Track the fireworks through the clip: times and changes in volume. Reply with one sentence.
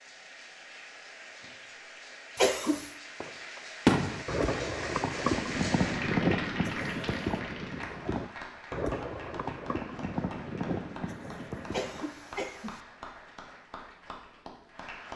The fireworks can be heard from 3.2 to 12.0 s, getting quieter.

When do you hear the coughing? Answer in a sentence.
The coughing can be heard from 2.4 to 2.9 s and from 11.7 to 12.8 s.